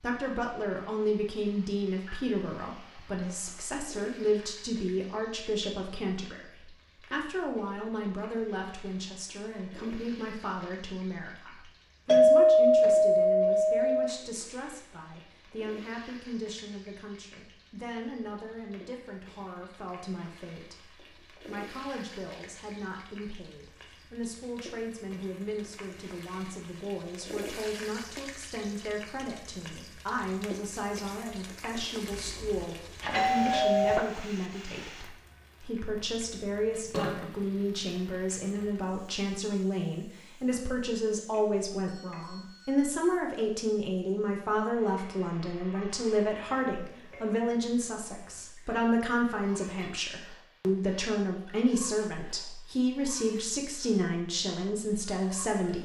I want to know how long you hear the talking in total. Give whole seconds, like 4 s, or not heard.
56 s.